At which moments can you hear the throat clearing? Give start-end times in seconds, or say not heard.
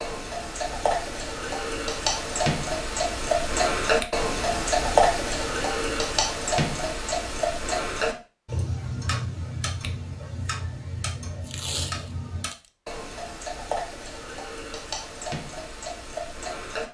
not heard.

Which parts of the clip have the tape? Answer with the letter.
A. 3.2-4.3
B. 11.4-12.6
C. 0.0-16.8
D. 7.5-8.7
B.